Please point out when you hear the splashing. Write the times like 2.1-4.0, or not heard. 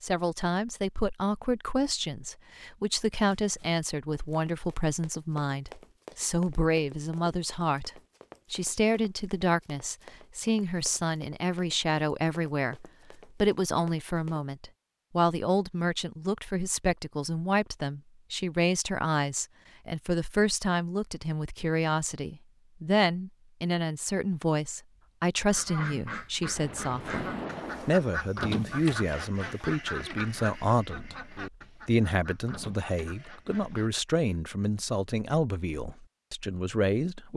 26.6-28.1.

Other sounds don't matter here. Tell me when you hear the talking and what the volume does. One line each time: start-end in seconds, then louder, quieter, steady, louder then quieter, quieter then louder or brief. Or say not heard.
0.0-37.3 steady.